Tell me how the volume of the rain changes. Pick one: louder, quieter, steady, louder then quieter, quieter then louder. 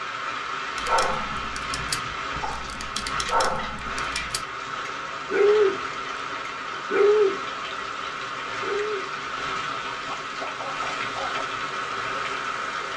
steady.